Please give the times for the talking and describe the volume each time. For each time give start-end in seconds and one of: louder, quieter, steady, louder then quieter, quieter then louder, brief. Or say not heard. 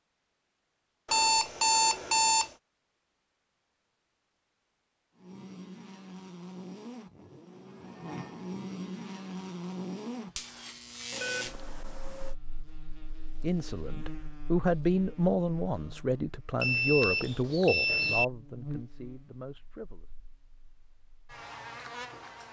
13.4-20.1 quieter.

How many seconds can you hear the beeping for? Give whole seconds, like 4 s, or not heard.
4 s.